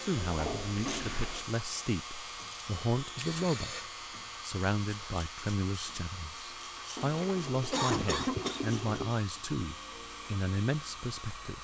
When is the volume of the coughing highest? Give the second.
8 s.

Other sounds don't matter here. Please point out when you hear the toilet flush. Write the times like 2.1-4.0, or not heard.
0.1-1.4, 7.0-9.2.